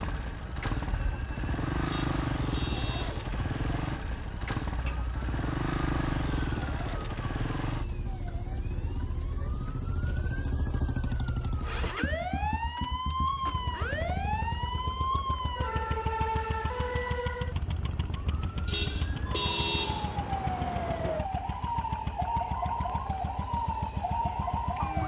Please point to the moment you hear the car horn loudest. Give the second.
20 s.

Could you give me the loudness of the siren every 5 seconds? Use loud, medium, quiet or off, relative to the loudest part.
medium, medium, loud, loud, loud.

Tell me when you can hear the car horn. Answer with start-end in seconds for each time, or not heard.
1.9-3.2, 18.6-20.1.